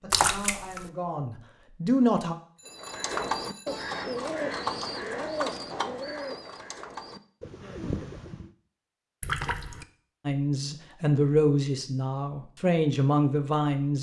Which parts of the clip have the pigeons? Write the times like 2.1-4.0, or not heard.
2.6-8.5.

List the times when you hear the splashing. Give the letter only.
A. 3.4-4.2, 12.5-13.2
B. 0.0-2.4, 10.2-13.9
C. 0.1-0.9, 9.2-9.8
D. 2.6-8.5
C.